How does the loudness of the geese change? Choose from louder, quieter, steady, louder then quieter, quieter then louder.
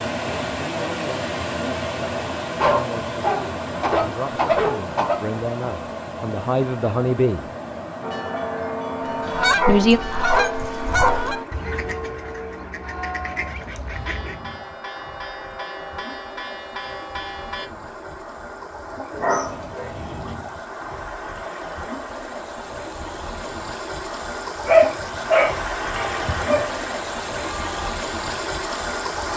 quieter then louder.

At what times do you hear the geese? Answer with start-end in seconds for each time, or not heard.
9.2-14.3.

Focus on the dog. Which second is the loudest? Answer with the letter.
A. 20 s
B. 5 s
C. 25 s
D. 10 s
C.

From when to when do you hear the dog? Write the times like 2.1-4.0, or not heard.
2.5-5.3, 9.2-11.2, 19.1-20.4, 24.6-26.6.